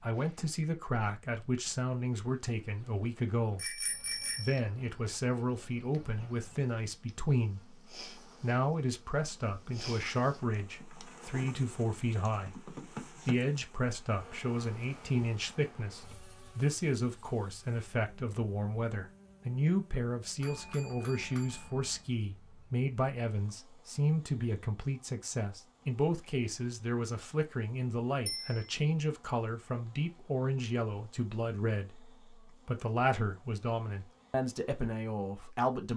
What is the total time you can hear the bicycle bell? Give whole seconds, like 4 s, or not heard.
3 s.